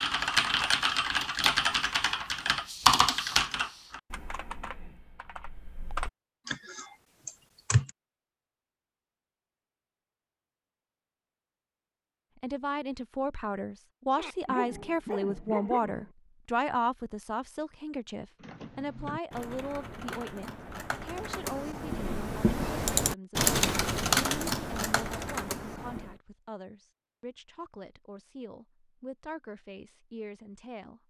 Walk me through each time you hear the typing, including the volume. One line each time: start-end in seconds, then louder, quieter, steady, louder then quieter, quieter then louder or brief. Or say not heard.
0.0-7.9 quieter
18.4-26.1 louder then quieter.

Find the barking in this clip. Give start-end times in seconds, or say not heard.
14.2-16.1.